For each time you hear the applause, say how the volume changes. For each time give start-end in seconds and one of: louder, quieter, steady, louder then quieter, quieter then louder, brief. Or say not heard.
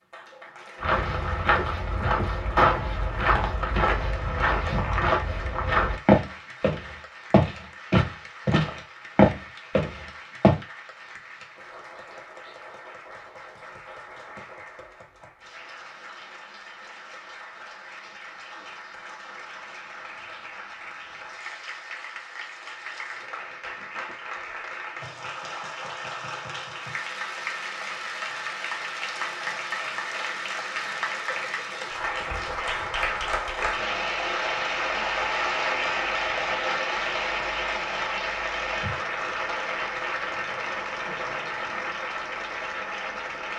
0.0-43.5 louder.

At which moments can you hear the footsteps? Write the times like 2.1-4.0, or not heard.
0.8-10.6.